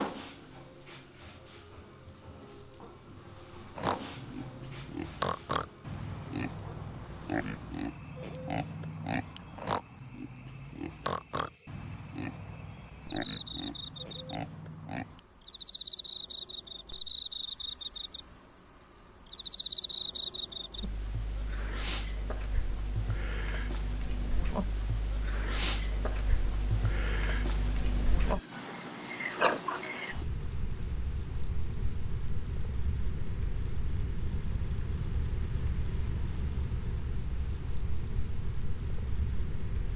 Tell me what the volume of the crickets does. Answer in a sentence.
The volume of the crickets goes up.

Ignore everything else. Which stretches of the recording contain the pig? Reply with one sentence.
You can hear the pig from 3.8 to 15.2 s.